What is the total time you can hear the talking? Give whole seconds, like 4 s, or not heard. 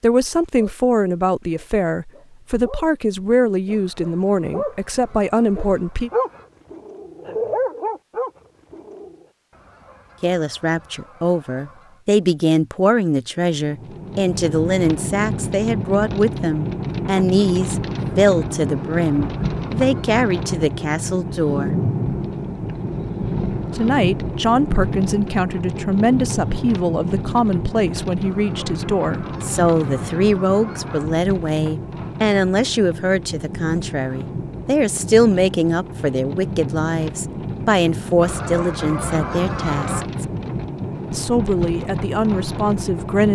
36 s.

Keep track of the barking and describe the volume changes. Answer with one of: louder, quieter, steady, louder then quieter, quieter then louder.
louder.